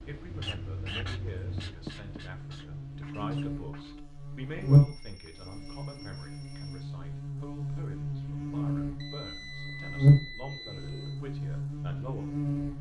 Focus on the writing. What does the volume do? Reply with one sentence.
The volume of the writing goes down.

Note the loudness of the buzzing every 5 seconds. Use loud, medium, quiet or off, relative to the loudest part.
loud, medium, loud.